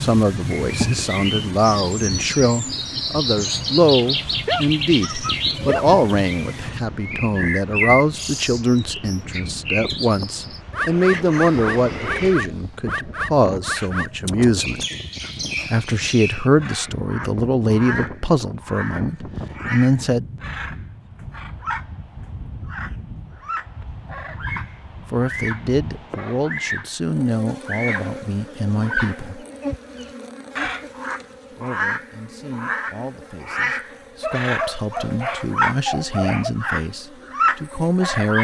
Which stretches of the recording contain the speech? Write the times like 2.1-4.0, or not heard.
0.0-14.8, 15.7-20.2, 25.1-29.4, 31.5-38.3.